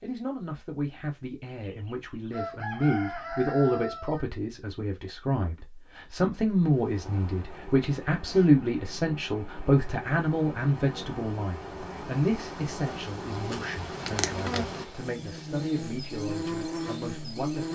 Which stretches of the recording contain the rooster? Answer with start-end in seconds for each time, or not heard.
1.6-4.2.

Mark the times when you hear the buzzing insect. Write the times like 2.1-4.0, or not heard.
6.6-17.7.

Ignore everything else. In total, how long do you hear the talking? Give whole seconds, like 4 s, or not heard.
18 s.